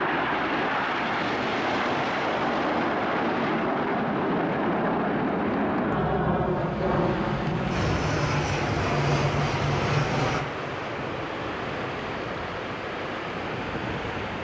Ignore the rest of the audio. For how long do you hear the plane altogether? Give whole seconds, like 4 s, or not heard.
14 s.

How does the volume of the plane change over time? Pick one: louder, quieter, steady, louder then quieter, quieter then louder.
quieter.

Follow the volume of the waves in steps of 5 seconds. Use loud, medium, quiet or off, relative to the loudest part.
off, loud, loud.